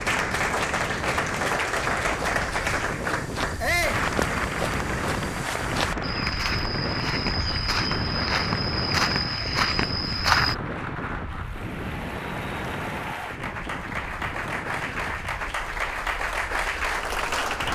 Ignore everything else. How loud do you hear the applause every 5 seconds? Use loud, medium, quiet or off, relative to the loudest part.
loud, medium, medium, loud.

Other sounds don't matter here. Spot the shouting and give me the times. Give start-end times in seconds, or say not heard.
3.6-4.0.